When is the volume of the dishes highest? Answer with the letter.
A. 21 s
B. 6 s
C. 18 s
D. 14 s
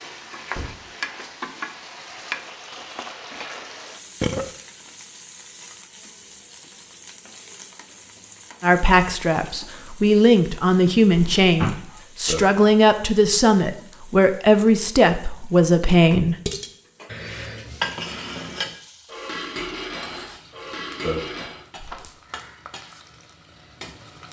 C.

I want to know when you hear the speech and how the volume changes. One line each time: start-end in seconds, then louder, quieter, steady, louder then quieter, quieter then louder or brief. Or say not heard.
8.6-16.4 steady.